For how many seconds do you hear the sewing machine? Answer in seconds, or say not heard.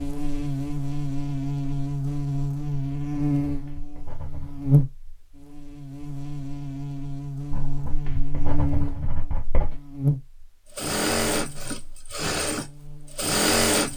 3 s.